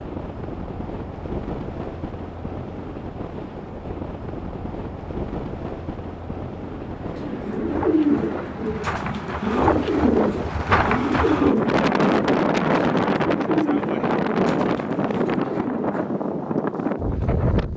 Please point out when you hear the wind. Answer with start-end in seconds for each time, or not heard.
0.0-17.7.